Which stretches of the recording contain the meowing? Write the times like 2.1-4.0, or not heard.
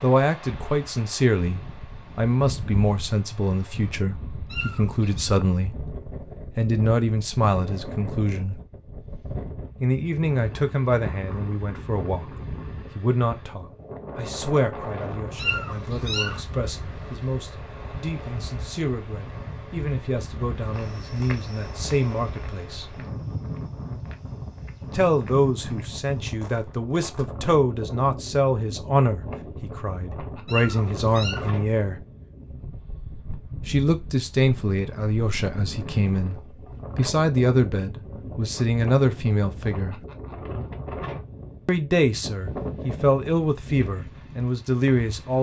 4.5-5.3, 15.3-16.4, 30.4-31.5.